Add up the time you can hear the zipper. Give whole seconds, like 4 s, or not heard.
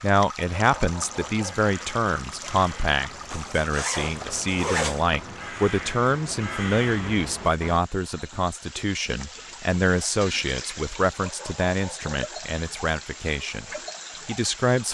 2 s.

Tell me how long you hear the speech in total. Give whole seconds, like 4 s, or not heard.
14 s.